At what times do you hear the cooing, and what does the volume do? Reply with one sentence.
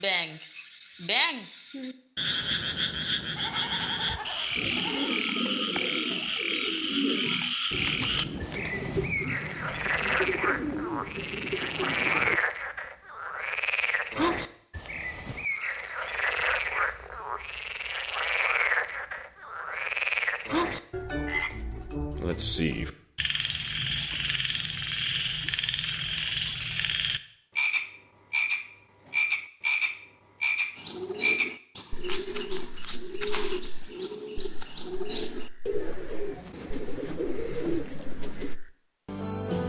You can hear the cooing from 4.5 to 12.4 s, at a steady volume; and from 30.8 to 38.5 s, at a steady volume.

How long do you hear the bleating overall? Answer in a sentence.
The bleating can be heard for 2 seconds in total.